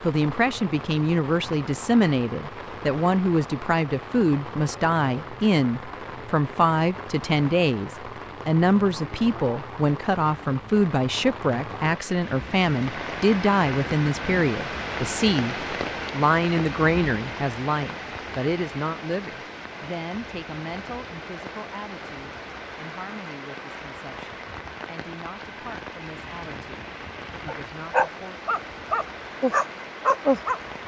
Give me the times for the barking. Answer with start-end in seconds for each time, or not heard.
27.4-30.8.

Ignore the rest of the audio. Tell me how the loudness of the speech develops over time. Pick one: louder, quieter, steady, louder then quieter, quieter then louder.
quieter.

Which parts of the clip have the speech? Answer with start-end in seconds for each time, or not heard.
0.0-28.4.